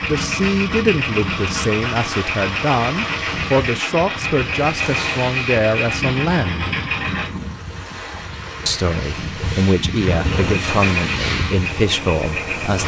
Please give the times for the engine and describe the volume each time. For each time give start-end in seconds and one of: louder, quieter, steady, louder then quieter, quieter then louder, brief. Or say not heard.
0.0-7.3 steady
10.6-12.8 brief.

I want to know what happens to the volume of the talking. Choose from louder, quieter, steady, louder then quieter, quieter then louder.
steady.